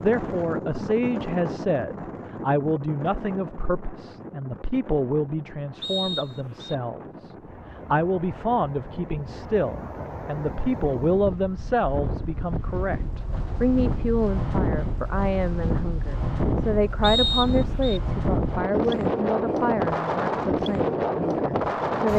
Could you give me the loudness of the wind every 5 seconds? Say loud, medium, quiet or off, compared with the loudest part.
medium, quiet, medium, loud, loud.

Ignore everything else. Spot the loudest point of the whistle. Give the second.
17 s.